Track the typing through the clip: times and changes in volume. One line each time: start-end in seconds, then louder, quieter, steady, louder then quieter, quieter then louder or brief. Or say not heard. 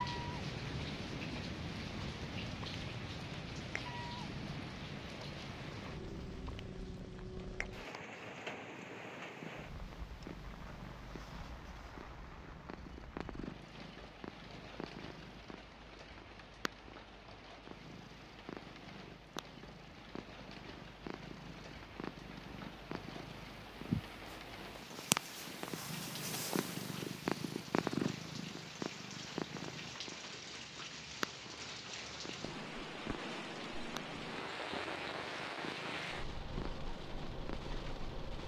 not heard.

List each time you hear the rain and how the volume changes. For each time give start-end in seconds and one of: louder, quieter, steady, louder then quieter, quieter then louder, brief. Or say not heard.
0.0-38.4 quieter then louder.